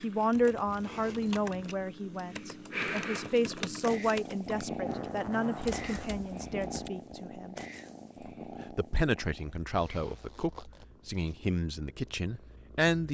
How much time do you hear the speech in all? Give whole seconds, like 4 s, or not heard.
12 s.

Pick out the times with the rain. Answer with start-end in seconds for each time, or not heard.
not heard.